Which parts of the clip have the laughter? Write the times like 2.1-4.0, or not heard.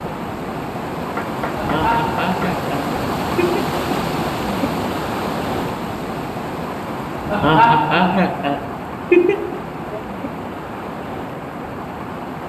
1.6-3.6, 7.3-10.0.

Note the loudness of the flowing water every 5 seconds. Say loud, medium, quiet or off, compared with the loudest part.
loud, loud, medium.